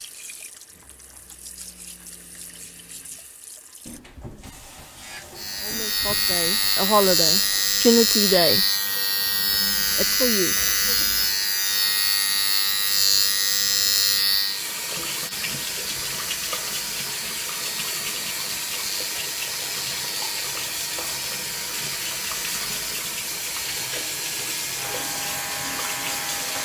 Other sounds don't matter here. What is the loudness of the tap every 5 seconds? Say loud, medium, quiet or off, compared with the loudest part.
quiet, quiet, medium, loud, loud, loud.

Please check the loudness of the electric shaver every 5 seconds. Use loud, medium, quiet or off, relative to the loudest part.
off, loud, loud, quiet, quiet, medium.